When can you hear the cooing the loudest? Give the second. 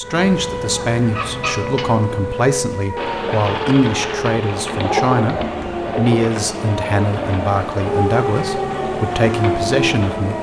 5 s.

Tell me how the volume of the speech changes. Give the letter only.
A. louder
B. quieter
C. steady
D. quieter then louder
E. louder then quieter
C.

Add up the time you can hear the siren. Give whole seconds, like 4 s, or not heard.
10 s.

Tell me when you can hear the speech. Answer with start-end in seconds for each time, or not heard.
0.0-10.3.